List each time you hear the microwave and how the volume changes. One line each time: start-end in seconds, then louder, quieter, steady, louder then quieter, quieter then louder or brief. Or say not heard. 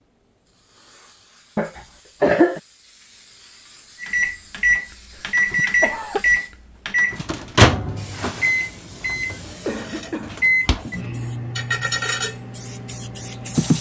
4.0-13.7 quieter.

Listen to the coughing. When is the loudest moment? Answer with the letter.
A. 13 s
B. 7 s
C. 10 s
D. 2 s
D.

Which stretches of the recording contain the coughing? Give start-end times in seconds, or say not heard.
1.6-2.6, 5.7-6.2, 9.4-11.0.